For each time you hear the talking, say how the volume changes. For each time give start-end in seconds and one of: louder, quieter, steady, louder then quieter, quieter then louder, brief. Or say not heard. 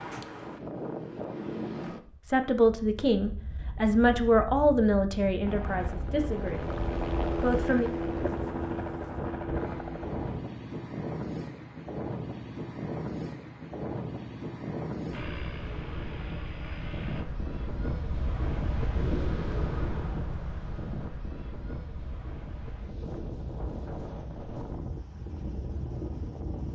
2.2-7.9 quieter.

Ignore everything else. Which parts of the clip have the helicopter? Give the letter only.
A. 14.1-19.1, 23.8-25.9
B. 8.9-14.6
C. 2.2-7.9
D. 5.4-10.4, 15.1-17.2
D.